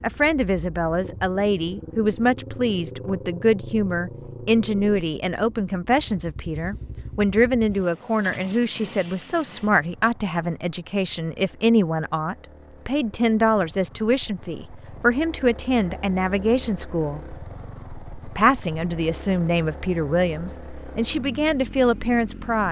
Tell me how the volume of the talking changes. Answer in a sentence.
The loudness of the talking stays about the same.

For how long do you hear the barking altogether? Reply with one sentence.
The barking can't be heard in this clip.